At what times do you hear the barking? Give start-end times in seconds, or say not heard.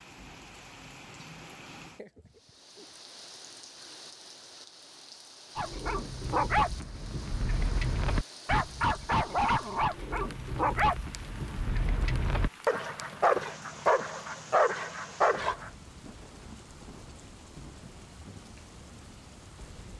5.5-15.7.